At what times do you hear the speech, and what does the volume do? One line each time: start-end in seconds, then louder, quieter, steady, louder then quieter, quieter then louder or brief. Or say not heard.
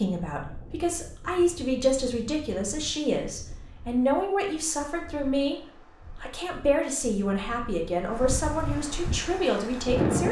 0.0-10.2 steady.